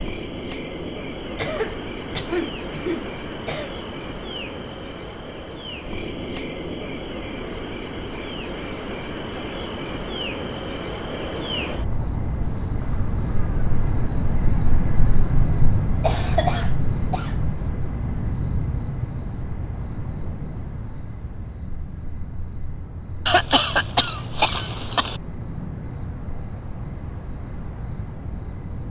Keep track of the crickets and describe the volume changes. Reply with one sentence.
The loudness of the crickets goes up, then down.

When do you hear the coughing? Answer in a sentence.
You can hear the coughing from 1.4 to 3.7 s, from 16.0 to 17.4 s and from 23.2 to 25.2 s.